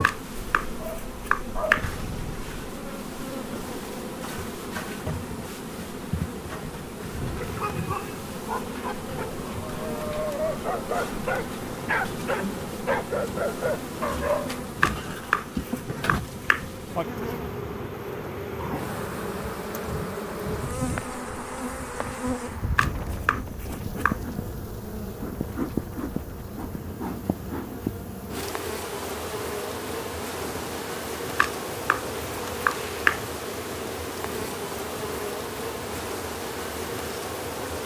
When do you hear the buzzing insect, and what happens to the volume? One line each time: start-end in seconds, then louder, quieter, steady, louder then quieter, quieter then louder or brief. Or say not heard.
0.0-37.8 steady.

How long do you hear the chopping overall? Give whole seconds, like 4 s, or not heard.
7 s.